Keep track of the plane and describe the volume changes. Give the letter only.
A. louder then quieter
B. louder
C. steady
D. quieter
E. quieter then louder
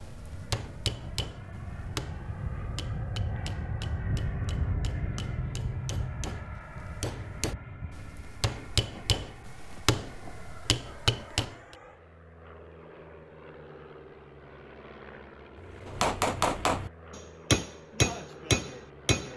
D.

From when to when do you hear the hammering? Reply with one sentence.
You can hear the hammering from 0.0 to 11.6 s and from 15.6 to 19.3 s.